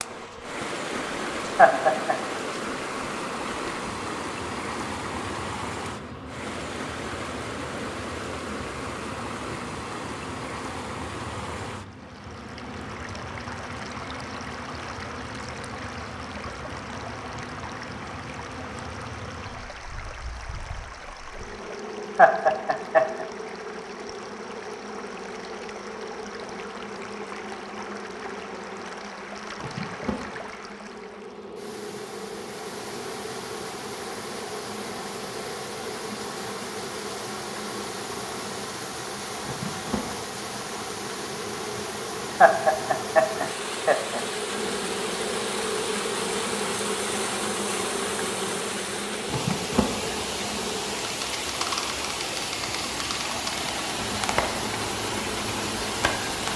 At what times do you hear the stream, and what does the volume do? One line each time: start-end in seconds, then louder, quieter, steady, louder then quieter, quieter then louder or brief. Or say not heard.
0.0-56.5 quieter then louder.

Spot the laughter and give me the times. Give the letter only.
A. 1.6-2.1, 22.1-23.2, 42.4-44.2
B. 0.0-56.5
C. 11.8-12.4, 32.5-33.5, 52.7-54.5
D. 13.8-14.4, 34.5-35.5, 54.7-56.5
A.